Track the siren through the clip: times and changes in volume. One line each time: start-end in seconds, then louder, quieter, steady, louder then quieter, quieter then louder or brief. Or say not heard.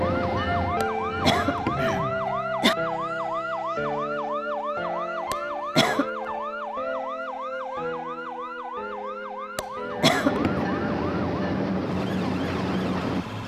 0.0-13.4 quieter.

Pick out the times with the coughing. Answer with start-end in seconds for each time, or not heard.
0.8-2.8, 5.3-6.0, 9.6-10.7.